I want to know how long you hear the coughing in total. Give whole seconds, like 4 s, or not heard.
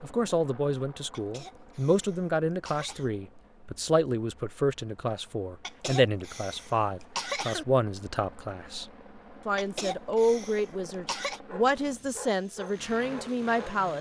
6 s.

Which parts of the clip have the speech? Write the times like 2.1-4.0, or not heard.
0.0-13.9.